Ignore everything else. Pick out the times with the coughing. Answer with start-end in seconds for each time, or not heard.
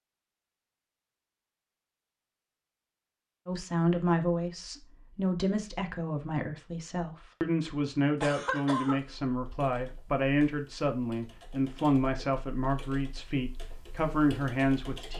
8.2-9.0.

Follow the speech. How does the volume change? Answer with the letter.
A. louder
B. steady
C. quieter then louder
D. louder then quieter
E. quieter
B.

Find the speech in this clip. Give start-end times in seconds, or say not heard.
3.5-15.1.